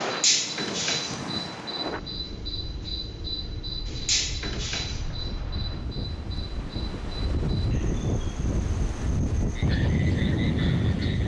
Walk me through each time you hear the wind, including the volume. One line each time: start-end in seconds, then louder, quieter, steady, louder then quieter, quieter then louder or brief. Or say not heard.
0.0-11.2 quieter then louder.